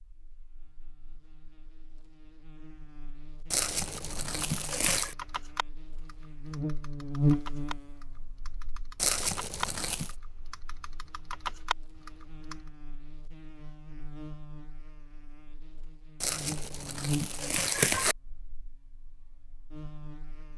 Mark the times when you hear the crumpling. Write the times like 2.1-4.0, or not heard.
3.5-5.2, 8.9-10.2, 16.2-18.1.